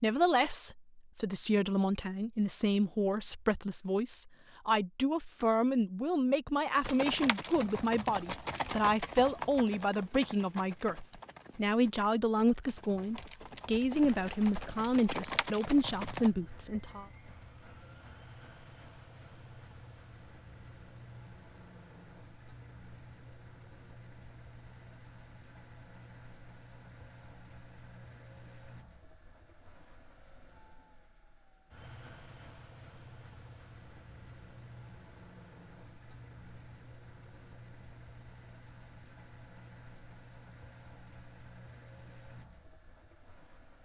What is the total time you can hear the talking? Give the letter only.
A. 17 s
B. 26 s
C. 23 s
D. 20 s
A.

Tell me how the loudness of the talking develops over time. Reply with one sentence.
The loudness of the talking stays about the same.